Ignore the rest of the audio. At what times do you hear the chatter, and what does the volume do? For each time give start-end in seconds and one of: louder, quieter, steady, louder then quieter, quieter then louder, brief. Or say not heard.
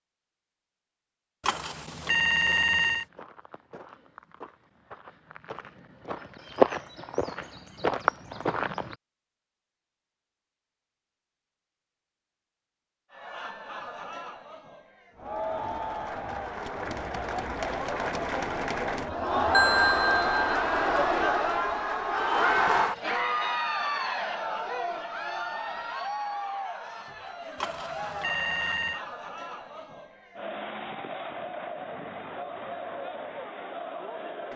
13.1-34.5 louder then quieter.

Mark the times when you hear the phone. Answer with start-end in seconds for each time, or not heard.
1.4-3.0, 19.5-20.6, 27.6-29.1.